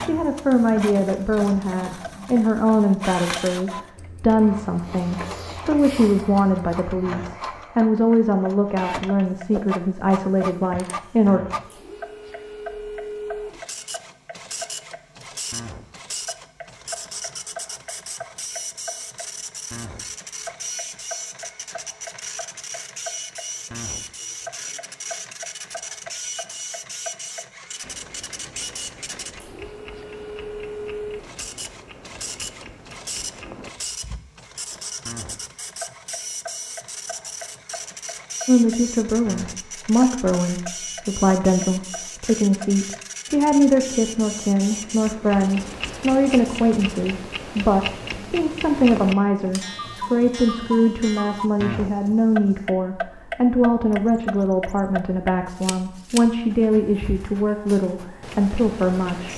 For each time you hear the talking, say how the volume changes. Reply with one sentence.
You can hear the talking from 0.0 to 11.4 s, at a steady volume; and from 38.5 to 59.3 s, at a steady volume.